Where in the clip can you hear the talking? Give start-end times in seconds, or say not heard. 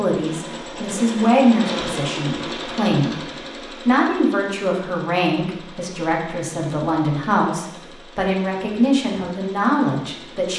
0.0-3.2, 3.9-10.5.